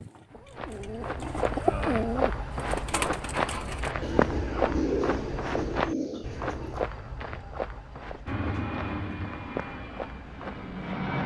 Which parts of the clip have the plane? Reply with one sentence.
You can hear the plane from 8.2 to 11.2 s.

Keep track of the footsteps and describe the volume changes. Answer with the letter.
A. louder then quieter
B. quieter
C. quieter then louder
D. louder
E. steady
B.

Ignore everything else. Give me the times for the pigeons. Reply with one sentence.
The pigeons can be heard from 0.0 to 6.8 s.